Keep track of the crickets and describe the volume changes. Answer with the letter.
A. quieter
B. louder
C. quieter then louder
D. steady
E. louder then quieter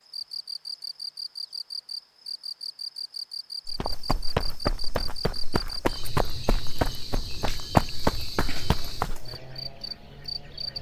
D.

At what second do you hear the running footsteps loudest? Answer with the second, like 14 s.
8 s.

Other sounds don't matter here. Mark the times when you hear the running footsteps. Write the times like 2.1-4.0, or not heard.
3.6-9.3.